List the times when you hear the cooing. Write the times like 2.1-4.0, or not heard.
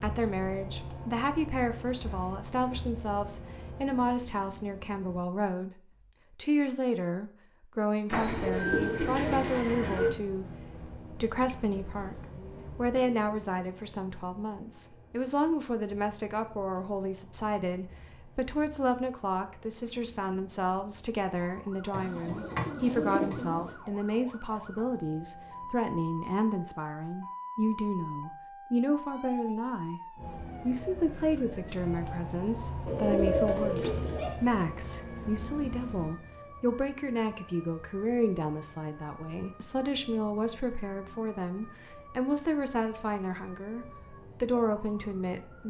8.1-10.1, 21.9-23.8, 32.9-34.4.